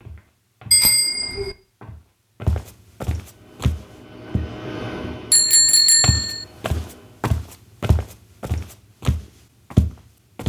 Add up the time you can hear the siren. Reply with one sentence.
You can't hear the siren here.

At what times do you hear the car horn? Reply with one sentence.
You can't hear the car horn here.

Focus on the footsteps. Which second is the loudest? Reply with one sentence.
The loudest moment of the footsteps is at 10 seconds.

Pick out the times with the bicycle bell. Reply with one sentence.
You can hear the bicycle bell from 0.7 to 1.6 s and from 5.3 to 6.5 s.